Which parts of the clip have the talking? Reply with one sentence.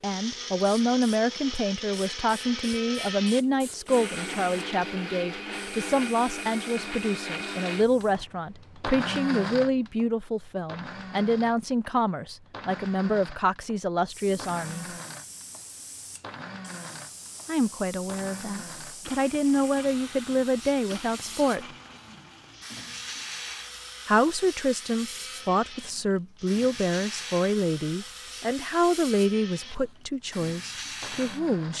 You can hear the talking from 0.0 to 14.8 s, from 17.4 to 21.6 s and from 24.1 to 31.7 s.